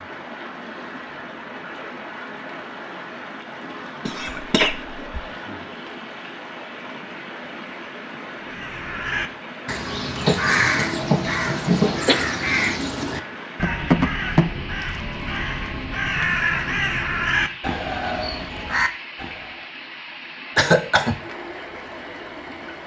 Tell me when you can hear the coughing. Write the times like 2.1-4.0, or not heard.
4.0-5.2, 10.2-12.2, 20.6-21.2.